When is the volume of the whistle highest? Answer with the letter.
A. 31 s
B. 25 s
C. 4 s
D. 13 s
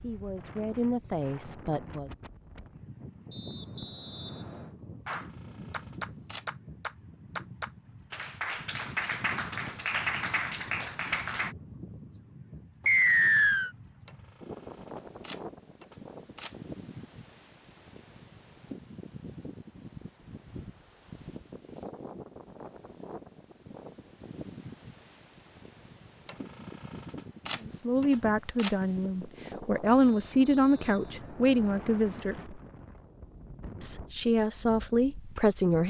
D.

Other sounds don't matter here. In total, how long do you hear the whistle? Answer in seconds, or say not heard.
4 s.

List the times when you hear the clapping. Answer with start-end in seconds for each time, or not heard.
5.0-11.6.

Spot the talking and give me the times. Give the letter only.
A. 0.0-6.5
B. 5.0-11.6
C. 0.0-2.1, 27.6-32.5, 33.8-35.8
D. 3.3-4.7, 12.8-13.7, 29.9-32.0
C.